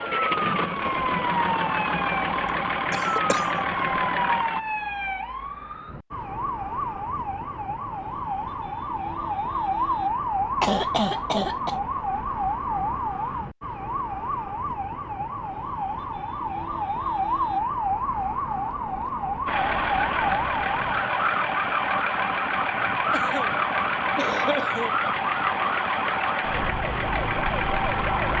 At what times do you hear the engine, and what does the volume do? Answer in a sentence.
The engine can be heard from 0.0 to 4.6 s, at a steady volume; and from 19.4 to 28.3 s, at a steady volume.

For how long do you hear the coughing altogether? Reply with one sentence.
The coughing can be heard for 4 seconds in total.